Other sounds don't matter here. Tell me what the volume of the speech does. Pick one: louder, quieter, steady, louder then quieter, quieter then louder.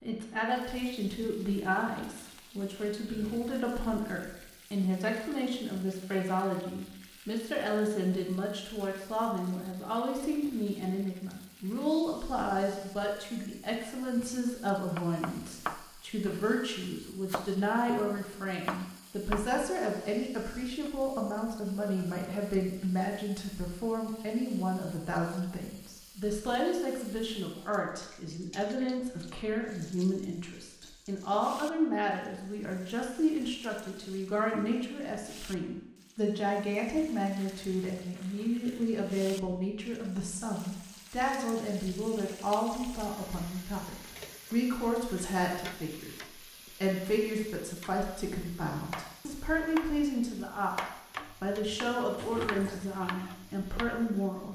steady.